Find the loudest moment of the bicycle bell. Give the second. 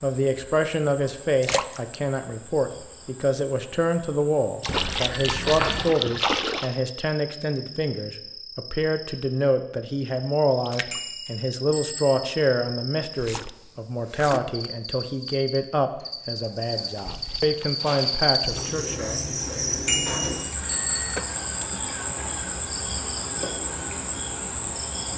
21 s.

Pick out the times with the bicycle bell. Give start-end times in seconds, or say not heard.
4.7-5.9, 10.9-12.2, 19.9-21.2.